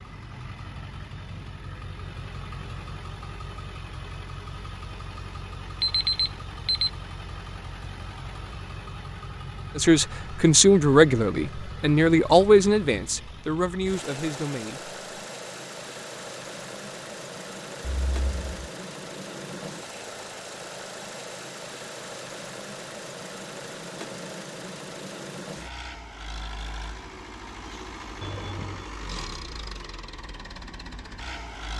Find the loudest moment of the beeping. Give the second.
6 s.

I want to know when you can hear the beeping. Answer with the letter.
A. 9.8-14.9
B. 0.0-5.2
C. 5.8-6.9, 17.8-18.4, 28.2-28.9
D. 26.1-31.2
C.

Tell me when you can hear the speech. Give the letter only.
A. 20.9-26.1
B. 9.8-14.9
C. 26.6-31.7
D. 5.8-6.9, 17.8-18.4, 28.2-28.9
B.